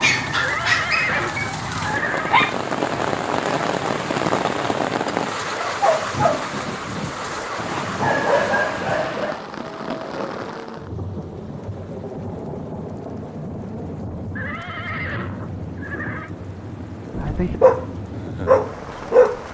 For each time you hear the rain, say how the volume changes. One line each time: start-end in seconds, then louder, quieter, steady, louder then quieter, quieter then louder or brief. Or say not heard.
0.0-19.5 quieter.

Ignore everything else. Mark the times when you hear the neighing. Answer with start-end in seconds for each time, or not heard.
0.3-2.4, 14.3-16.3.